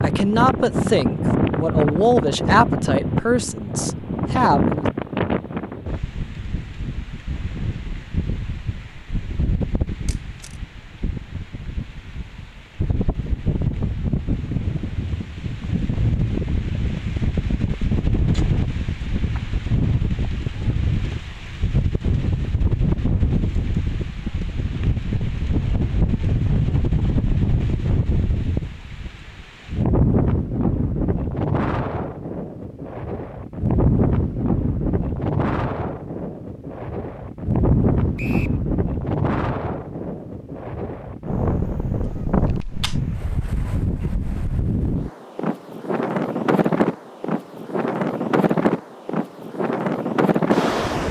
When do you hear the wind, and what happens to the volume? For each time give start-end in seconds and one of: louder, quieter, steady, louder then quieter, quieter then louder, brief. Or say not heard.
0.0-51.0 steady.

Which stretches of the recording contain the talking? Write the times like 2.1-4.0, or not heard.
0.0-4.8.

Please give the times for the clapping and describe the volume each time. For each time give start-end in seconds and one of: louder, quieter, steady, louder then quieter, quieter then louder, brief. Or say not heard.
not heard.